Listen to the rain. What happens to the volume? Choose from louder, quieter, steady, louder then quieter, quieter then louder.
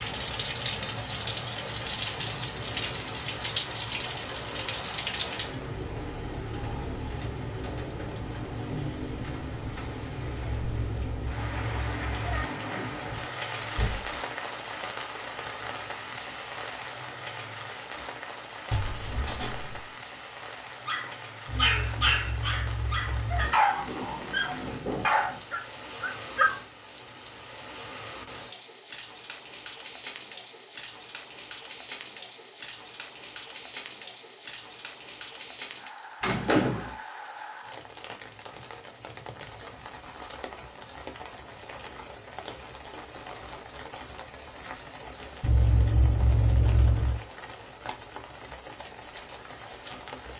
quieter.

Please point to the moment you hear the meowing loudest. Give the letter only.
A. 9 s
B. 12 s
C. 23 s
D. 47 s
D.